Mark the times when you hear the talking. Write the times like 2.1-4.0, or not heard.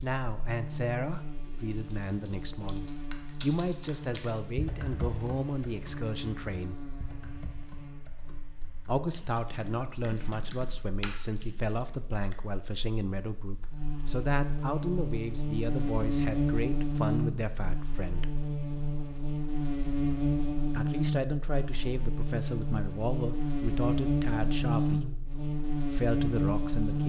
0.0-6.8, 8.8-18.4, 20.7-25.1, 25.9-27.0.